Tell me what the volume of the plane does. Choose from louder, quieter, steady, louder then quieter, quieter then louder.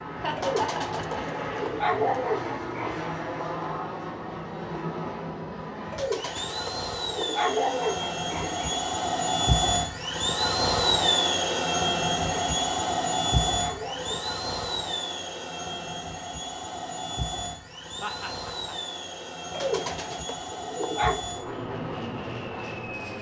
louder then quieter.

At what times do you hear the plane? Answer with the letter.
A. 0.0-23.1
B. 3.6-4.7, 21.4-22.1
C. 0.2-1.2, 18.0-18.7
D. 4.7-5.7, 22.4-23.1
A.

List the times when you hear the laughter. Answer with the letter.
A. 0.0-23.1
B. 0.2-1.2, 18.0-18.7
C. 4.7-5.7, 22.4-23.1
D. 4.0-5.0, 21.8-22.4
B.